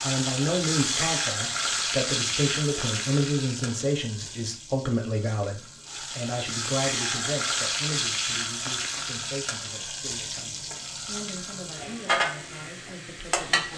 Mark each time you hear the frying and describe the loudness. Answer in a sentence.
You can hear the frying from 0.0 to 13.7 s, getting quieter then louder.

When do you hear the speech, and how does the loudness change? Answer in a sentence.
The speech can be heard from 0.0 to 13.7 s, getting quieter.